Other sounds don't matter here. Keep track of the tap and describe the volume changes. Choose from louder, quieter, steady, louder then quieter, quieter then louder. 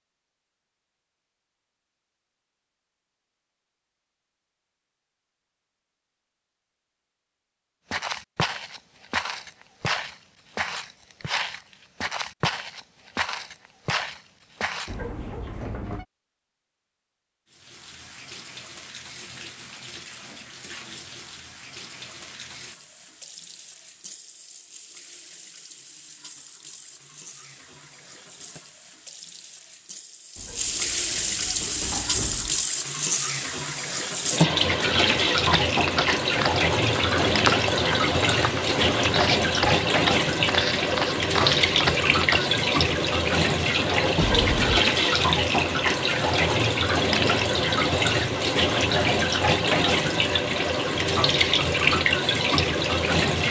louder.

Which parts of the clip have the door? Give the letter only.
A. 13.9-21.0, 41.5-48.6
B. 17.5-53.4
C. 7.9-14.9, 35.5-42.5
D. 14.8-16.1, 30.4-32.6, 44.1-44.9
D.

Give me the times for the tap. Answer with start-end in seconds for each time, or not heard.
17.5-53.4.